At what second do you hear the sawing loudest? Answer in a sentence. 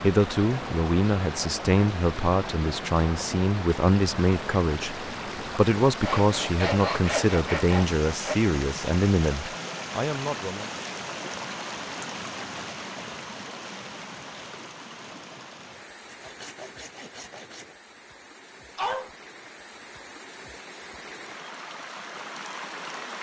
The volume of the sawing peaks at 7 seconds.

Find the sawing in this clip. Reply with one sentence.
The sawing can be heard from 6.0 to 8.3 s and from 16.1 to 17.8 s.